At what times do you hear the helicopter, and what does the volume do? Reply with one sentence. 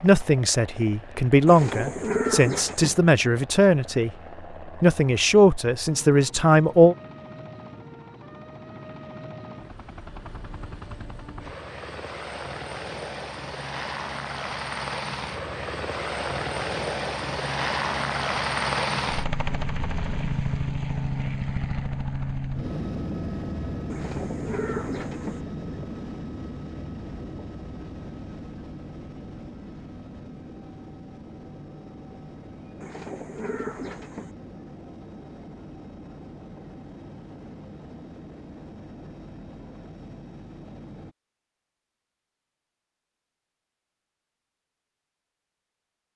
You can hear the helicopter from 0.0 to 41.1 s, getting louder then quieter.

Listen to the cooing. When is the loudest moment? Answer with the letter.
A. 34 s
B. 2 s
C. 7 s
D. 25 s
B.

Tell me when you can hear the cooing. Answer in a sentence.
The cooing can be heard from 1.4 to 3.0 s, from 23.9 to 25.4 s and from 32.8 to 34.3 s.